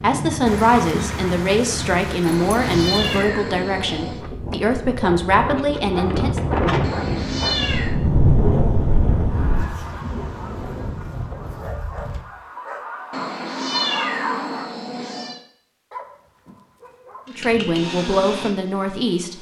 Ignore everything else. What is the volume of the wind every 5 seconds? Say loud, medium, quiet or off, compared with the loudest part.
medium, loud, medium, off.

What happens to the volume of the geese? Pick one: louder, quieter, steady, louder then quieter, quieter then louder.
quieter then louder.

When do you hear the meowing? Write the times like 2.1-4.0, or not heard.
2.2-4.2, 6.8-8.0, 13.1-15.4.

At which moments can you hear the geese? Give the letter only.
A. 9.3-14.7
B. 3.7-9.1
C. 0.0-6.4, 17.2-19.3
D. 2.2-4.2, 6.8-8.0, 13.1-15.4
A.